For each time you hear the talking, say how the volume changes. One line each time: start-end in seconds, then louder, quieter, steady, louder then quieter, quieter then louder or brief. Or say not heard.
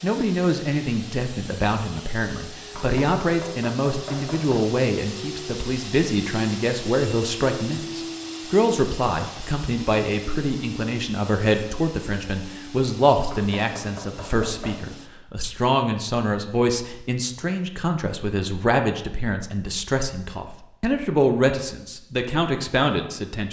0.0-23.4 steady.